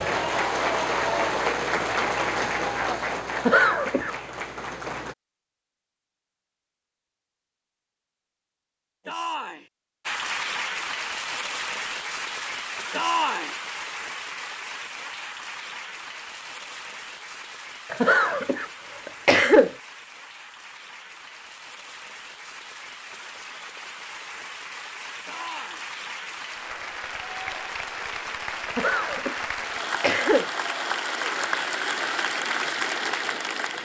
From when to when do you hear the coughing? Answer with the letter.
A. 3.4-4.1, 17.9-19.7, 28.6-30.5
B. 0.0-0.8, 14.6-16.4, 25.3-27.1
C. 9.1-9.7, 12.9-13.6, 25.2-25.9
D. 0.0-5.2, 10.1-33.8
A.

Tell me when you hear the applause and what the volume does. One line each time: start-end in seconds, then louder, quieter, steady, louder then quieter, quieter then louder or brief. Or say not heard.
0.0-5.2 quieter
10.1-33.8 quieter then louder.